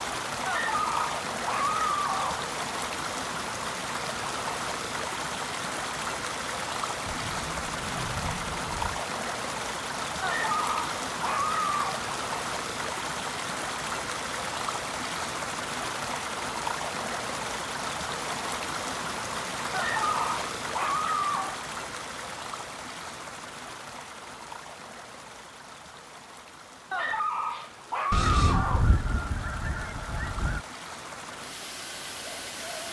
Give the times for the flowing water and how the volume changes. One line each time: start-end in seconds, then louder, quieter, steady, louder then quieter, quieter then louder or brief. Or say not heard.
0.0-32.8 quieter.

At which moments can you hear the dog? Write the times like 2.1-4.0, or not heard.
0.5-2.5, 10.2-12.1, 19.7-21.6, 26.9-28.9.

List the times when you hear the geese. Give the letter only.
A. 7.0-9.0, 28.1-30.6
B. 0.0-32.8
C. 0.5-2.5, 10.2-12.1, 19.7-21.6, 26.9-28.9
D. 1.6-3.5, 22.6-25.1
A.